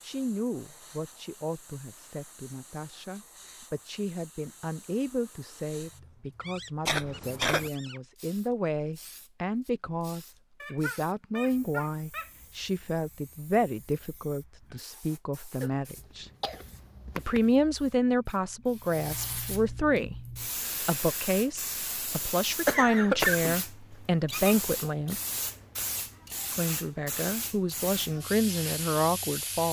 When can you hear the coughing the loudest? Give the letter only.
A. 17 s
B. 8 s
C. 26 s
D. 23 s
D.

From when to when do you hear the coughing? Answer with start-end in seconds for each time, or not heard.
6.8-7.7, 15.6-17.4, 22.6-23.6.